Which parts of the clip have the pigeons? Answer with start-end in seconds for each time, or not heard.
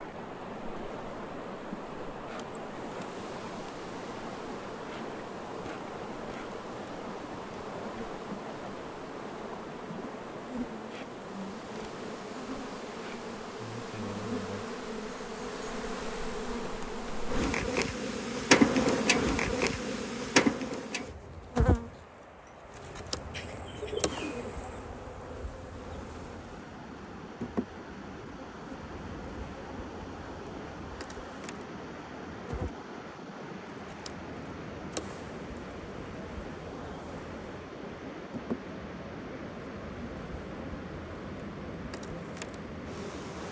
23.3-24.9.